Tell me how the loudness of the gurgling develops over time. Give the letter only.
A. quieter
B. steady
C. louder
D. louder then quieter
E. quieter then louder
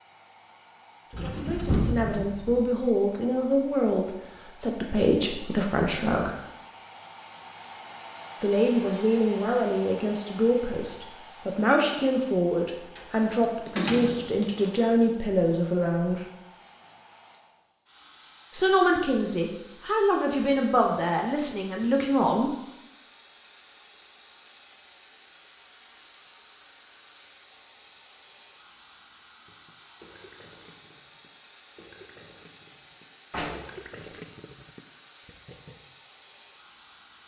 D.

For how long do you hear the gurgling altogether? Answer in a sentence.
You can hear the gurgling for 6 seconds altogether.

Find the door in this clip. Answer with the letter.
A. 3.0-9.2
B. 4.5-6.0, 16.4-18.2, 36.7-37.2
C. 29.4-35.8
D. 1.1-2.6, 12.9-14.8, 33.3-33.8
D.